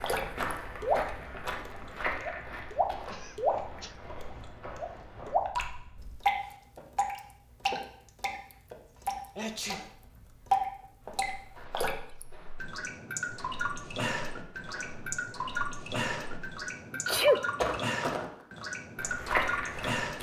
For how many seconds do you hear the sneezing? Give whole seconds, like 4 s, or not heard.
2 s.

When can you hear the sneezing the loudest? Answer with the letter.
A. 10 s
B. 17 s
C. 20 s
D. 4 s
B.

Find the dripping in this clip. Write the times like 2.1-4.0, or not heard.
0.0-20.1.